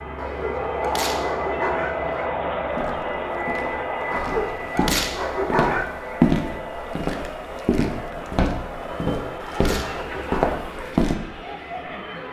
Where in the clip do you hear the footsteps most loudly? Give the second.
6 s.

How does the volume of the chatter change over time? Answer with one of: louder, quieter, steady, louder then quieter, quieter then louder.
quieter.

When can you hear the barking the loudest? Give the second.
6 s.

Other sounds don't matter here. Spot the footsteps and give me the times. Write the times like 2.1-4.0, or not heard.
2.7-11.2.